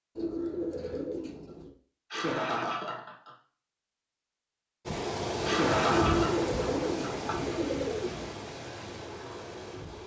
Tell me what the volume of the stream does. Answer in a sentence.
The loudness of the stream goes down.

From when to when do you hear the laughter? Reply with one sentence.
The laughter can be heard from 2.1 to 3.4 s and from 5.5 to 7.5 s.